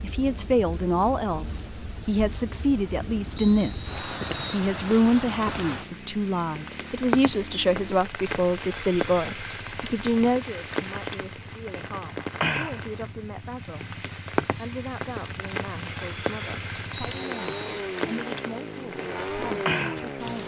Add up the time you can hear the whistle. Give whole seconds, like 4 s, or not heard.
2 s.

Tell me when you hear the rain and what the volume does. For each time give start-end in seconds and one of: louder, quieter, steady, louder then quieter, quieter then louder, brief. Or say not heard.
0.0-20.4 louder.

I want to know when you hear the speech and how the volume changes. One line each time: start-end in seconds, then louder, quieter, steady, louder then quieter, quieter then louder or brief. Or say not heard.
0.0-20.4 quieter.